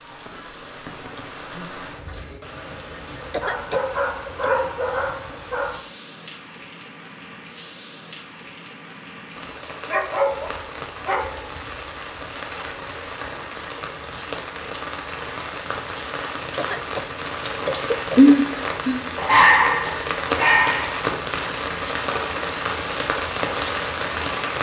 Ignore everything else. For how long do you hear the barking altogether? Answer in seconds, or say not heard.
6 s.